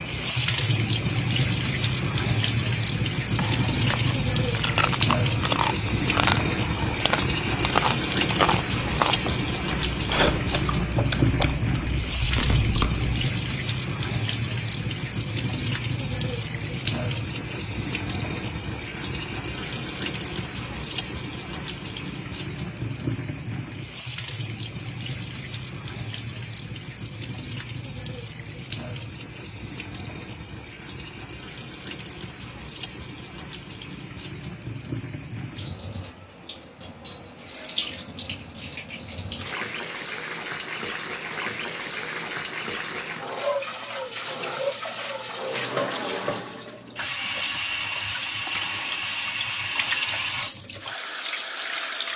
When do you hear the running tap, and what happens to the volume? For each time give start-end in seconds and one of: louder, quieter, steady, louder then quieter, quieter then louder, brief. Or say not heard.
0.0-52.1 quieter then louder.